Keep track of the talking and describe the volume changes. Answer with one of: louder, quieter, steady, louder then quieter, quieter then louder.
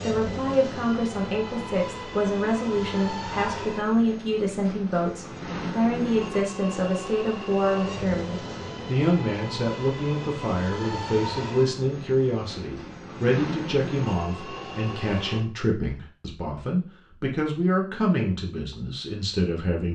steady.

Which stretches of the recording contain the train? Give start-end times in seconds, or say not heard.
0.0-15.4.